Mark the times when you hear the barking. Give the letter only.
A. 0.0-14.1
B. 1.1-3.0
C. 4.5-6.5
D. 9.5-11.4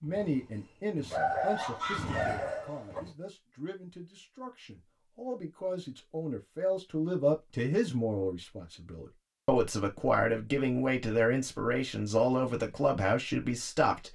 B.